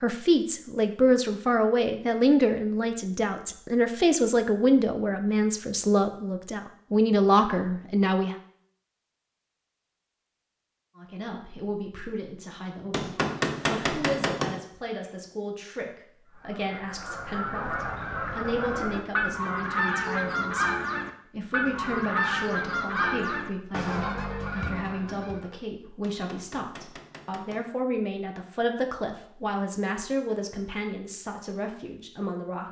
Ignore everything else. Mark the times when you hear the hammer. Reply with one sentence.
The hammer can be heard from 12.9 to 14.6 s and from 26.0 to 27.7 s.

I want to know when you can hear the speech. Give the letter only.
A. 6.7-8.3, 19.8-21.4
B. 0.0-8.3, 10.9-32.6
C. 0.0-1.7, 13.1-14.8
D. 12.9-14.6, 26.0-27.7
B.